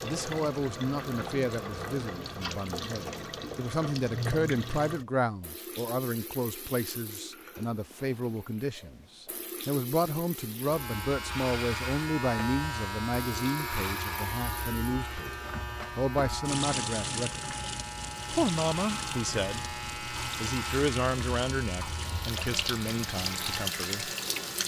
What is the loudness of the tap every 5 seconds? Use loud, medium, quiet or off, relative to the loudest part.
loud, medium, medium, loud, loud.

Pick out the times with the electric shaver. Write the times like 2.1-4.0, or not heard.
10.7-24.6.